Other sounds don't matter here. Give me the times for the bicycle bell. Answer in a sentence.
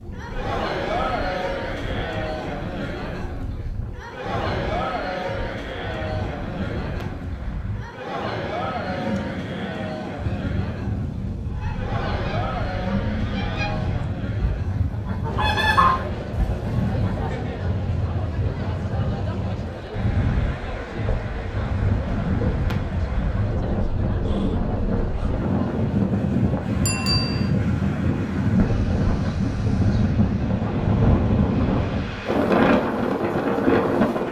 You can hear the bicycle bell from 26.9 to 27.5 s.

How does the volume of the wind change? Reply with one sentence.
The volume of the wind goes up.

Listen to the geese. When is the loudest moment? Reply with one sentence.
The volume of the geese peaks at 16 seconds.